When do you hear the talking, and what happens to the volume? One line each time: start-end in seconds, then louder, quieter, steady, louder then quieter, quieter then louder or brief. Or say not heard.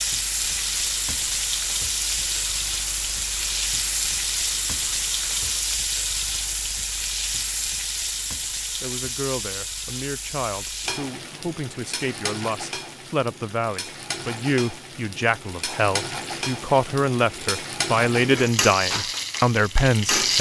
8.8-20.3 louder.